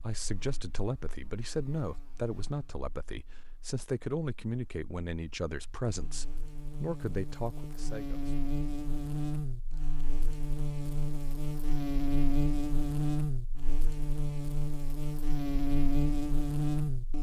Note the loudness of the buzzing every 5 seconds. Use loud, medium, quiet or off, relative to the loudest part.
quiet, medium, loud, loud.